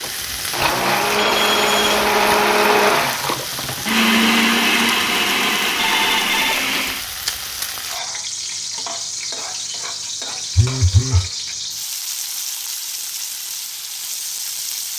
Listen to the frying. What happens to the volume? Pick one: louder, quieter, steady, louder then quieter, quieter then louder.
steady.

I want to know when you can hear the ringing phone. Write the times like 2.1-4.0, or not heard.
1.1-1.9, 5.8-6.7, 10.6-11.3.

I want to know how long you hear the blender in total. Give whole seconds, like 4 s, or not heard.
7 s.